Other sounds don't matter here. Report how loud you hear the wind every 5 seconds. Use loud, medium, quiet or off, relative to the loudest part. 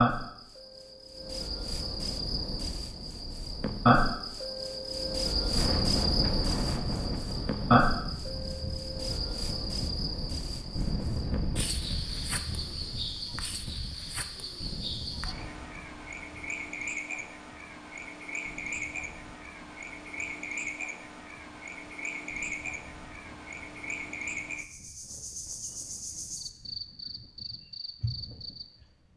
off, loud, loud, quiet, quiet, quiet.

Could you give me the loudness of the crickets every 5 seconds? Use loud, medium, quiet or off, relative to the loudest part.
loud, loud, medium, medium, medium, medium.